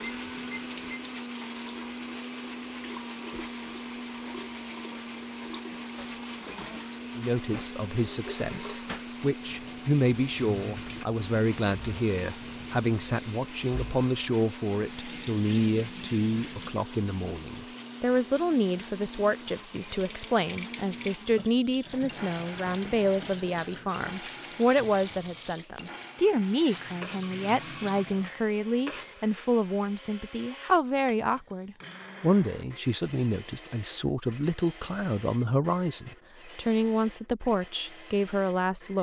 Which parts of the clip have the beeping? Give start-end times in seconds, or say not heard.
0.0-1.0.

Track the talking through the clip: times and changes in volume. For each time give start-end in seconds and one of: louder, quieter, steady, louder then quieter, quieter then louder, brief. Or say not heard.
7.2-38.9 steady.